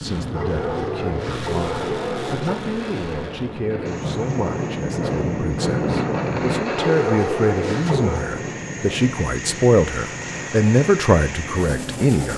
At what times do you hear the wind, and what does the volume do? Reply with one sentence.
The wind can be heard from 0.0 to 12.2 s, getting louder then quieter.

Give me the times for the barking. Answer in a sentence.
The barking can be heard from 0.3 to 2.6 s and from 6.8 to 8.3 s.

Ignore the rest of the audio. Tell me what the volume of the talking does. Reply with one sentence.
The volume of the talking goes up.